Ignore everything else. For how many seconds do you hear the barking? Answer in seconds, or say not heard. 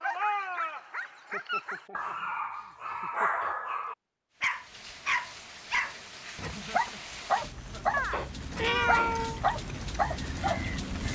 11 s.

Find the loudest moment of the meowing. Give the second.
9 s.